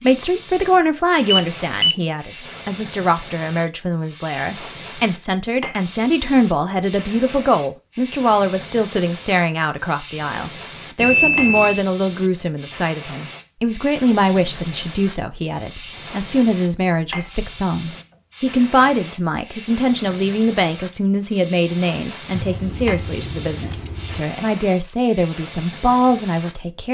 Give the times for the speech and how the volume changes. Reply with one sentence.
You can hear the speech from 0.0 to 26.8 s, at a steady volume.